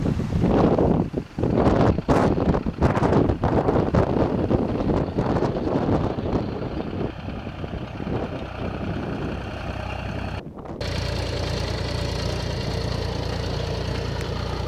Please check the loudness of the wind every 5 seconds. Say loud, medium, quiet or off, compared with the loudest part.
loud, medium, quiet.